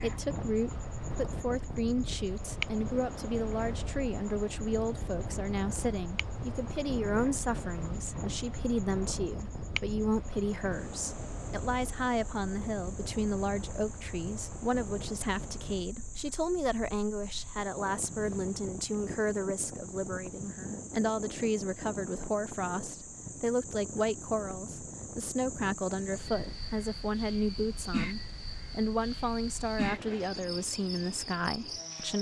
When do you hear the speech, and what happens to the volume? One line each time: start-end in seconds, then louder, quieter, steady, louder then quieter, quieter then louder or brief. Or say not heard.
0.0-32.1 steady.